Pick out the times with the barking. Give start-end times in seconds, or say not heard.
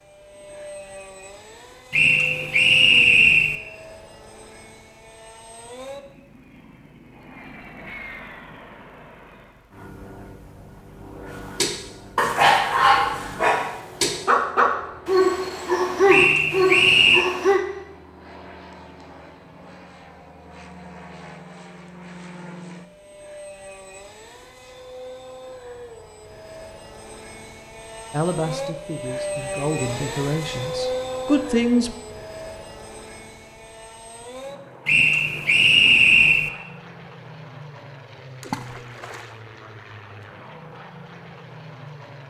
11.6-17.6.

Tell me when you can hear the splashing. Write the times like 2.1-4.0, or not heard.
38.4-39.4.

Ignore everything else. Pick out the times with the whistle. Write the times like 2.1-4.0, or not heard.
1.9-3.5, 16.1-17.2, 34.9-36.5.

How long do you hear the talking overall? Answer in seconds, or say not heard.
4 s.